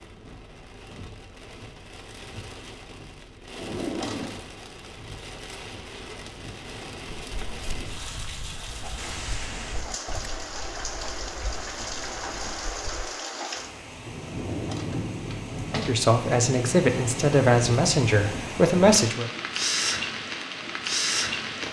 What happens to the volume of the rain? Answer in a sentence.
The volume of the rain goes up.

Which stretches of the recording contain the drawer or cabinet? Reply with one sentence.
You can hear the drawer or cabinet from 3.5 to 4.3 s and from 14.2 to 15.9 s.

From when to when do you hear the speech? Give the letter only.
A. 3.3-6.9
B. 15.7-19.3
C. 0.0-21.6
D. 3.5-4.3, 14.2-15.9
B.